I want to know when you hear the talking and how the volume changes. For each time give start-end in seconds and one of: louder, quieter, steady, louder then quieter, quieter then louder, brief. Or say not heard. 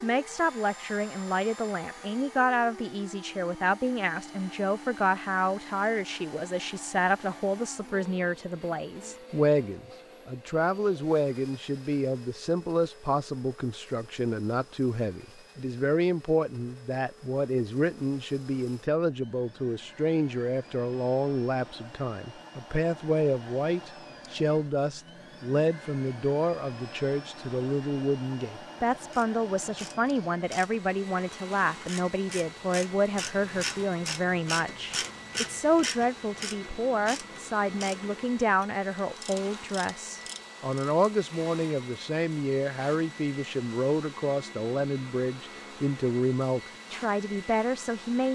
0.0-48.3 steady.